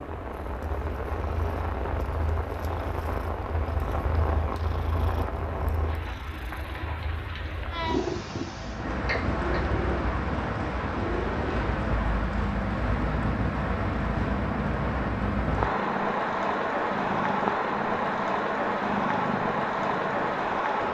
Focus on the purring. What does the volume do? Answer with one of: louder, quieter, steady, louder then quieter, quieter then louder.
louder.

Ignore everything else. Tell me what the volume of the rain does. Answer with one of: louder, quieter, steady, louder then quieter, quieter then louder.
louder.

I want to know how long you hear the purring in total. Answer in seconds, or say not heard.
21 s.